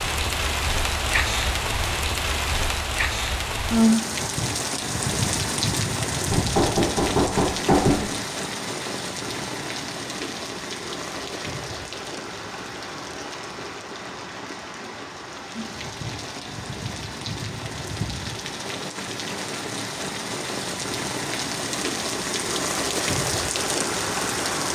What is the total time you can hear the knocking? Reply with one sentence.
The knocking can be heard for 2 seconds in total.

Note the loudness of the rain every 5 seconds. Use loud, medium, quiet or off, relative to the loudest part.
loud, loud, medium, medium, loud.